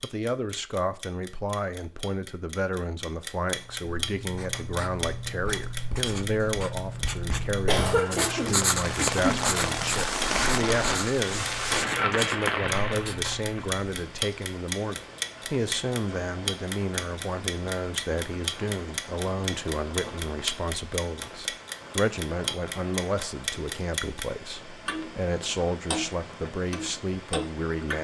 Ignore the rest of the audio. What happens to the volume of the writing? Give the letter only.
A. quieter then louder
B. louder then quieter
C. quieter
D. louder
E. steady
B.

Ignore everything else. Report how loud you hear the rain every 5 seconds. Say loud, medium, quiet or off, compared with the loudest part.
off, loud, loud, quiet, quiet, quiet.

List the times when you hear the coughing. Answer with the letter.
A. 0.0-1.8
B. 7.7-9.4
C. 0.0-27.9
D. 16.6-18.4
B.